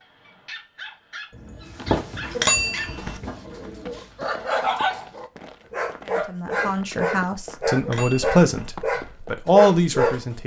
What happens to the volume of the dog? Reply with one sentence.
The loudness of the dog goes up.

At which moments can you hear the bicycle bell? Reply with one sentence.
You can hear the bicycle bell from 2.4 to 3.2 s and from 7.8 to 8.7 s.